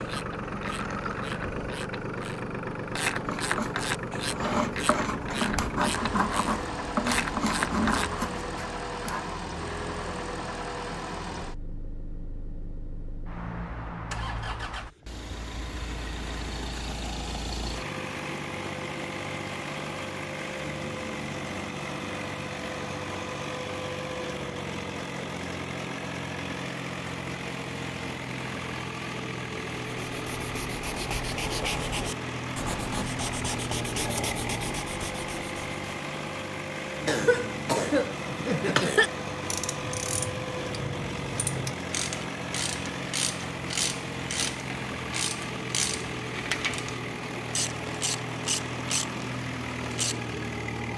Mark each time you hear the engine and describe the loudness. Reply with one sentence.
The engine can be heard from 0.0 to 50.9 s, at a steady volume.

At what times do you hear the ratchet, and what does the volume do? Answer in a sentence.
The ratchet can be heard from 0.0 to 8.2 s, getting louder; and from 39.4 to 50.2 s, at a steady volume.